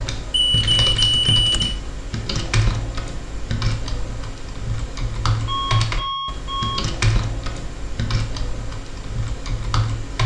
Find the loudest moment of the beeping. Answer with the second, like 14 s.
1 s.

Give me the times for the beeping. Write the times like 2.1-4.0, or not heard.
0.3-1.8, 5.5-6.8.